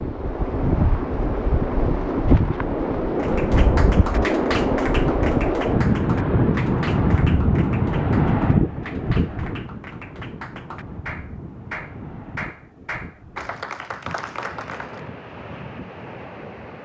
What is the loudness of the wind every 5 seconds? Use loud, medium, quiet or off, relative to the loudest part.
loud, loud, quiet, quiet.